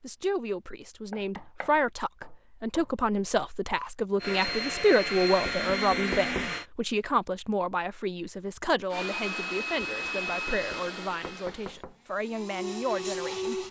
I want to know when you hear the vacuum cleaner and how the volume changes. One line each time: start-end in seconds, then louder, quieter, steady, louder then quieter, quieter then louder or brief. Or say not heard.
4.2-6.7 brief
8.9-13.6 quieter then louder.